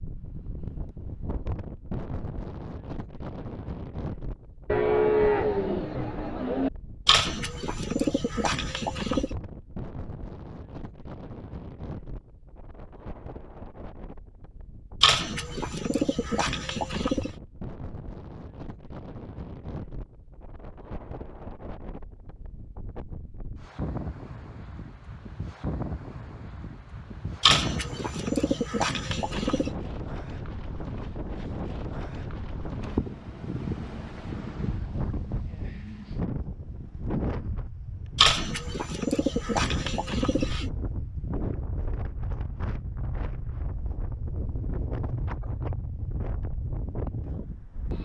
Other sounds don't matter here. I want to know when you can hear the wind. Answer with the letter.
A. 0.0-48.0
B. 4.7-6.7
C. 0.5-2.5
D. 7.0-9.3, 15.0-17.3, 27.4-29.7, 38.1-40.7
A.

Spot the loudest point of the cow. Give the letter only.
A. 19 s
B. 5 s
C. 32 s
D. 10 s
B.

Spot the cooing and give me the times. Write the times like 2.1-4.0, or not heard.
7.0-9.3, 15.0-17.3, 27.4-29.7, 38.1-40.7.